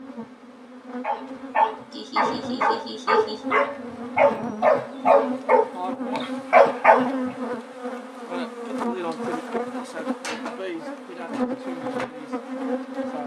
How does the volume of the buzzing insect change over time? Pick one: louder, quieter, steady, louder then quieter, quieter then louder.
louder.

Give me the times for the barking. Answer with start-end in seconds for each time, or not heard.
1.0-7.3.